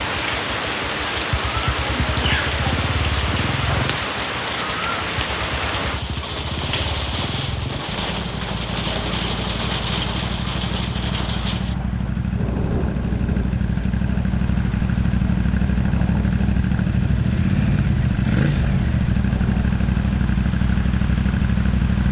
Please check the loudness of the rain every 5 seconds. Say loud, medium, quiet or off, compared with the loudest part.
loud, loud, medium, medium, medium.